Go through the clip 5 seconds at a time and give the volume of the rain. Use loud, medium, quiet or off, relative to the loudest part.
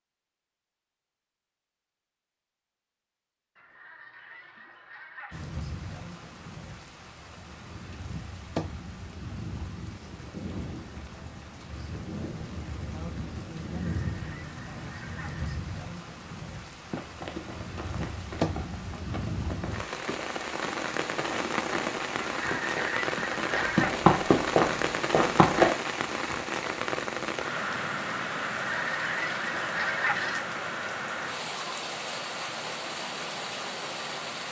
off, medium, medium, medium, loud, loud, loud.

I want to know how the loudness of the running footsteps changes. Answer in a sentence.
The loudness of the running footsteps goes up.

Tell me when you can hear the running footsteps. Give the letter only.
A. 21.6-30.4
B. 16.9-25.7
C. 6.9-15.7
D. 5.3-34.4
B.